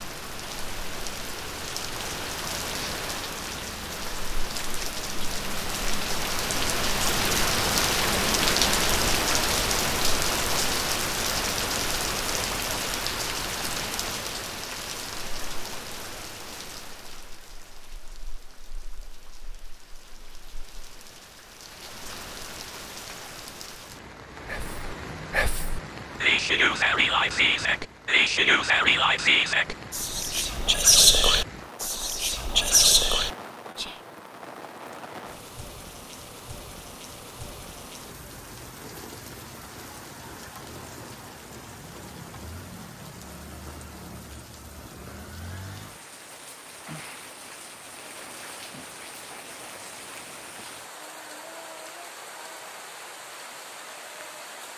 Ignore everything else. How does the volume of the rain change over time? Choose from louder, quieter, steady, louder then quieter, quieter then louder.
quieter.